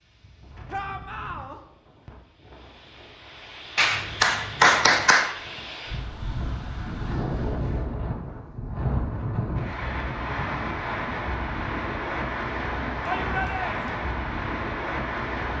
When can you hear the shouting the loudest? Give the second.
13 s.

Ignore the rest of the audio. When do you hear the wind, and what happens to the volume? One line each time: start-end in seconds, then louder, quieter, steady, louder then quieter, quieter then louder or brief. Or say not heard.
0.0-15.5 louder.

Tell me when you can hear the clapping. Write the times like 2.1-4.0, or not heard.
3.8-5.3.